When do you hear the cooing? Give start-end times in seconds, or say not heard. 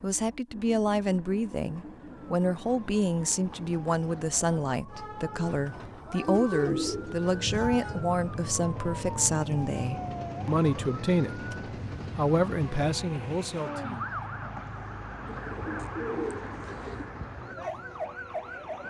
6.2-8.0, 15.2-17.1.